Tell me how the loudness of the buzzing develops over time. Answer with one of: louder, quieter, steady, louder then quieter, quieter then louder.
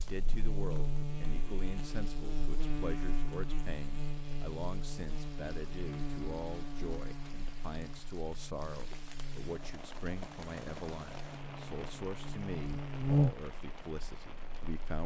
quieter then louder.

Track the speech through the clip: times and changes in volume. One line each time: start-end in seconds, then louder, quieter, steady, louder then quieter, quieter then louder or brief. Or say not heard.
0.0-15.0 steady.